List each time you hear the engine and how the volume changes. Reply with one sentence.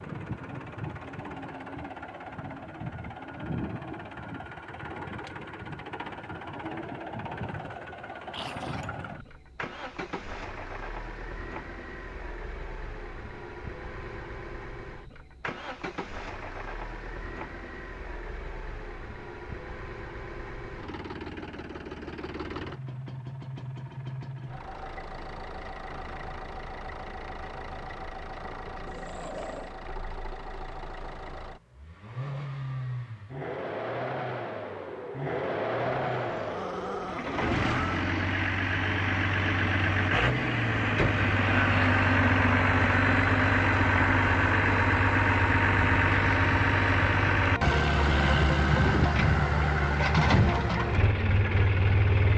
You can hear the engine from 0.0 to 52.3 s, getting louder.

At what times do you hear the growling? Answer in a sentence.
The growling can be heard from 8.3 to 8.9 s, from 28.9 to 29.7 s and from 36.0 to 38.0 s.